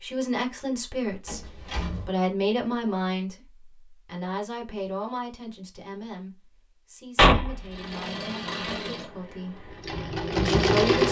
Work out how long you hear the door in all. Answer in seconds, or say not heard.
2 s.